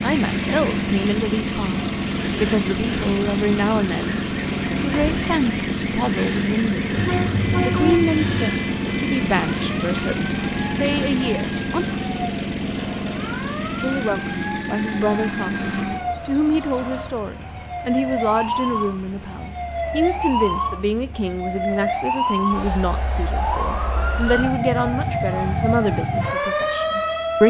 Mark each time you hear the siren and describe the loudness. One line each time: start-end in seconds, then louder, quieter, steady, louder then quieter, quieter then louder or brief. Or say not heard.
0.1-27.4 louder.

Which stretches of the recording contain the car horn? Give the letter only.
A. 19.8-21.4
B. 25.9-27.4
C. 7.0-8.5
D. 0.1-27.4
C.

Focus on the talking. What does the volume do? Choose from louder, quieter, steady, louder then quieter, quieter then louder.
steady.